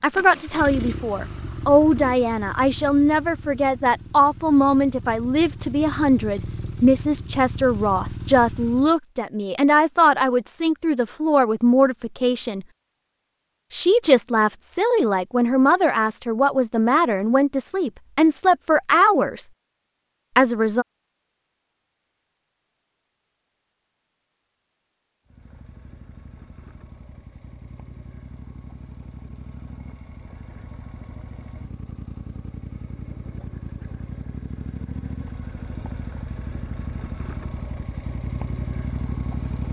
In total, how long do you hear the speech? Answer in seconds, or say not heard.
19 s.